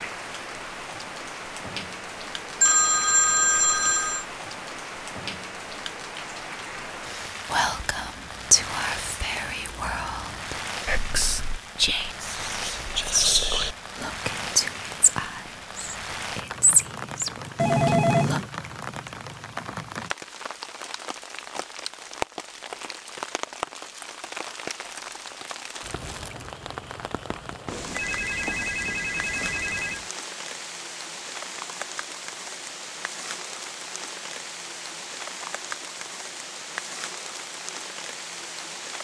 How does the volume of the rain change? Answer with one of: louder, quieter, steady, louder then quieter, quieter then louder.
steady.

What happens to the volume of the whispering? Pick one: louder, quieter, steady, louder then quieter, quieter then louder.
steady.